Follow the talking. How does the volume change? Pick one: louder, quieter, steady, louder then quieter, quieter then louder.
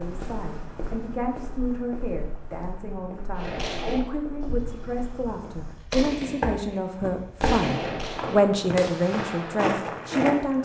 louder.